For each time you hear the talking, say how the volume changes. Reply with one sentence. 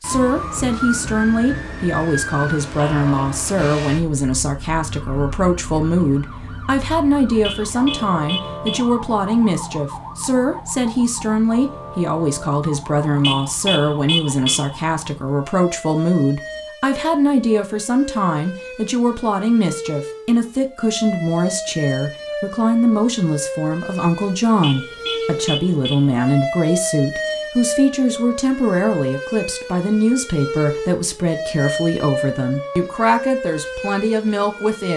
The talking can be heard from 0.0 to 34.9 s, at a steady volume.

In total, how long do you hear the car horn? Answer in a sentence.
You can hear the car horn for 5 seconds altogether.